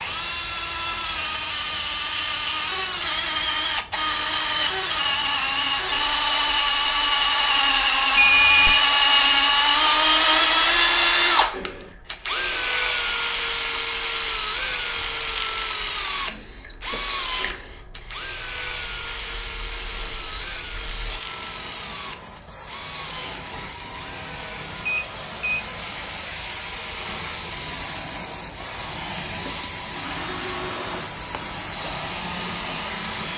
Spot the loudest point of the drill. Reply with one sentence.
The volume of the drill peaks at 11 seconds.